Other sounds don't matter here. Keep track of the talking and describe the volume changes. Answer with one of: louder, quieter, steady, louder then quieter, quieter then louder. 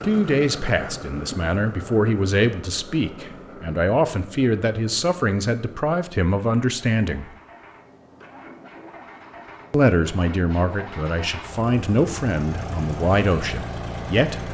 steady.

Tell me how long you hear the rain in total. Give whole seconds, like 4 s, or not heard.
not heard.